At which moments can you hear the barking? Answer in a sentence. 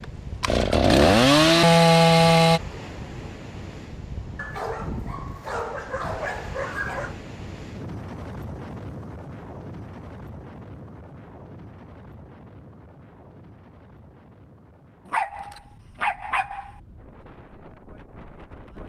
The barking can be heard from 4.3 to 7.2 s and from 15.1 to 16.7 s.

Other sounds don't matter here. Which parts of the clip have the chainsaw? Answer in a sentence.
The chainsaw can be heard from 0.0 to 2.6 s.